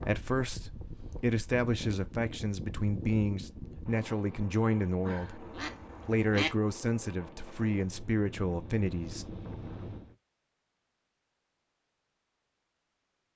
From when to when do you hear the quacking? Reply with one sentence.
The quacking can be heard from 5.0 to 6.5 s.